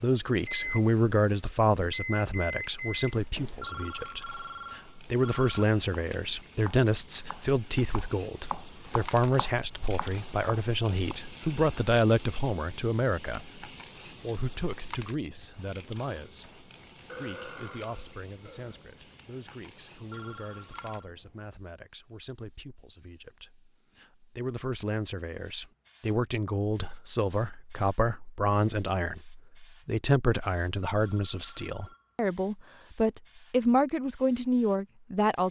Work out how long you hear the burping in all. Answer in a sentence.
You can hear the burping for 2 seconds altogether.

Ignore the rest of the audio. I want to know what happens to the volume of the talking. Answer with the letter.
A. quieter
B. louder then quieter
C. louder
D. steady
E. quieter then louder
E.